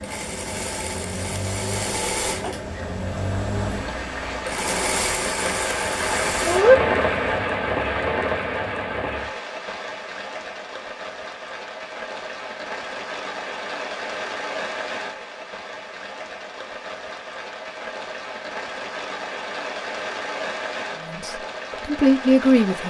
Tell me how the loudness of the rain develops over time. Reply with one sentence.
The loudness of the rain goes up, then down.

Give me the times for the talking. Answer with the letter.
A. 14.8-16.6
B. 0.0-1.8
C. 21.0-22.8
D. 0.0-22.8
C.